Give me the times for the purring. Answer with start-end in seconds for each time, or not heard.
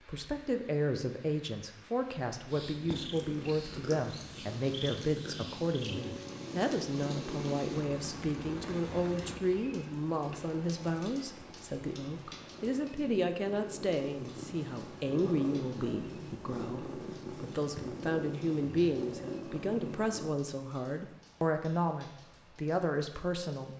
2.5-20.4.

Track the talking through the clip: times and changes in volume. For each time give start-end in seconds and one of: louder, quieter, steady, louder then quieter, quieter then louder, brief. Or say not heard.
0.1-23.7 steady.